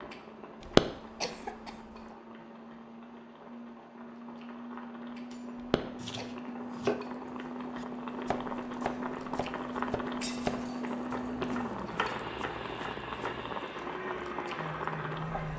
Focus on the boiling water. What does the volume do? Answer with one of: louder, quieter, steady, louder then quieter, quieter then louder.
louder.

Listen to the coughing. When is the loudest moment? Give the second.
1 s.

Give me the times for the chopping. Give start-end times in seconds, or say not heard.
6.0-13.6.